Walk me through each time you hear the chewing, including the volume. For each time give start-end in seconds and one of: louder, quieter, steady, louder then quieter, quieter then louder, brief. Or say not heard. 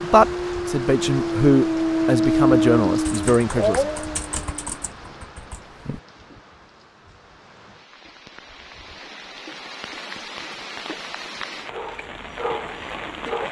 not heard.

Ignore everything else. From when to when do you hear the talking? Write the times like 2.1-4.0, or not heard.
0.0-3.9.